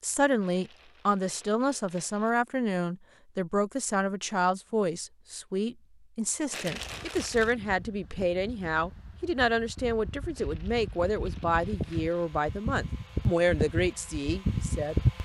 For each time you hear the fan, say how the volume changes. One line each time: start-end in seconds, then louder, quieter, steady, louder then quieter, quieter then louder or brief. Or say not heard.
6.7-15.2 louder.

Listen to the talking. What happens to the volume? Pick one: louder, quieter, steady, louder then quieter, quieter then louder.
steady.